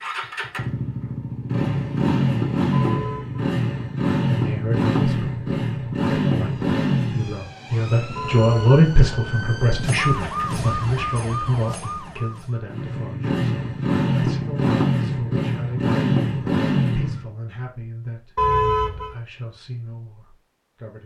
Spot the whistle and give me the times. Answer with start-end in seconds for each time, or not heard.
not heard.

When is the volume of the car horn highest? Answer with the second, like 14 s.
19 s.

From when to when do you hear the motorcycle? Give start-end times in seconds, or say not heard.
0.0-10.8, 12.7-17.2.